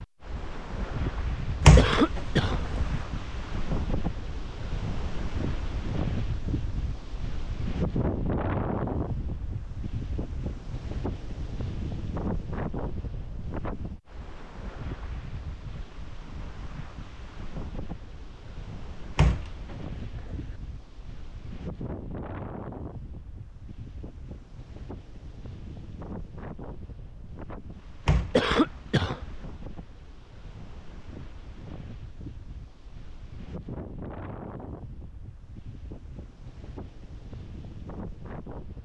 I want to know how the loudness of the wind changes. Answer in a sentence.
The volume of the wind goes down.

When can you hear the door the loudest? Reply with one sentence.
The loudest moment of the door is at 2 seconds.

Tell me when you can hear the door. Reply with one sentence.
You can hear the door from 1.6 to 3.0 s, from 19.1 to 20.6 s and from 28.1 to 29.4 s.